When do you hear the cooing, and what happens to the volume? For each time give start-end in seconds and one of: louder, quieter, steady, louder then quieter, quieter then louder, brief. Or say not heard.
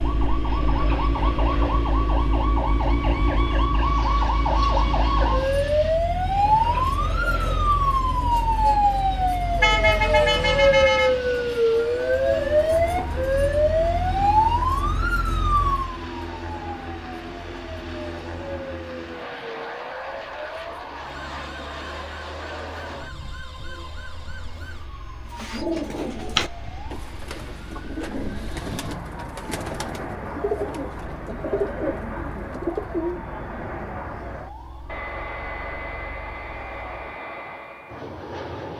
25.2-33.2 quieter then louder.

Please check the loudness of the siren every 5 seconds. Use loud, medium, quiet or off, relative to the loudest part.
medium, loud, loud, medium, quiet, quiet, quiet, quiet.